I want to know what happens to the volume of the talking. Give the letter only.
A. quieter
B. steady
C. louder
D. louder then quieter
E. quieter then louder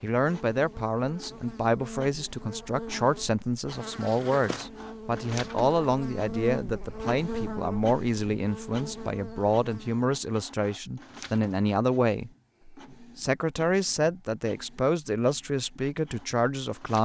B.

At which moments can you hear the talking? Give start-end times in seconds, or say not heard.
0.0-16.9.